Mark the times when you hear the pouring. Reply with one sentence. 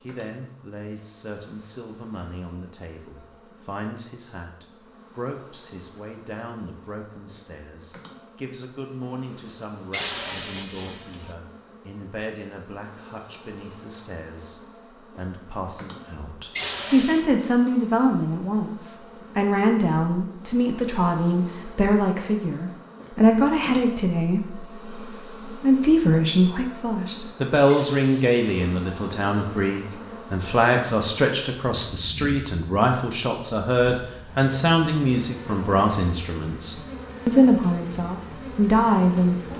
You can hear the pouring from 9.9 to 11.3 s, from 16.6 to 17.2 s and from 27.6 to 28.9 s.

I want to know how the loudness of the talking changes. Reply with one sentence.
The volume of the talking goes up.